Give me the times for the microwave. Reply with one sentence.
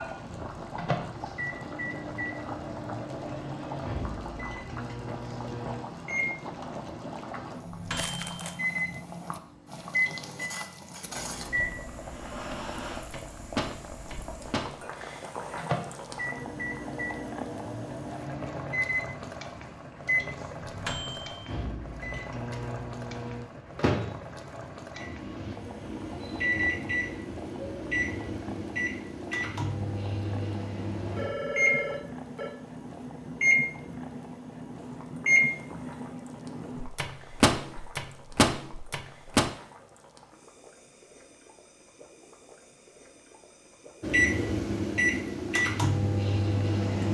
You can hear the microwave from 0.0 to 39.5 s and from 44.0 to 47.1 s.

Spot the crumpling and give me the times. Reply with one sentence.
You can hear the crumpling from 8.0 to 8.6 s.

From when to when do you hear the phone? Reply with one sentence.
The phone can be heard from 31.1 to 32.5 s.